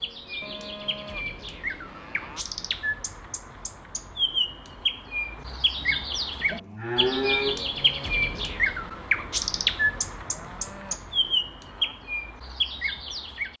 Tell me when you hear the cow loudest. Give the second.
7 s.